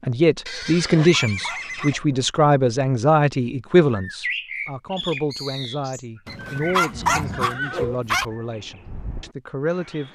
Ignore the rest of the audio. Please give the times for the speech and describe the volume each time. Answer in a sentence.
The speech can be heard from 0.0 to 10.0 s, getting quieter.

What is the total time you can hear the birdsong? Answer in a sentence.
You can hear the birdsong for 6 seconds altogether.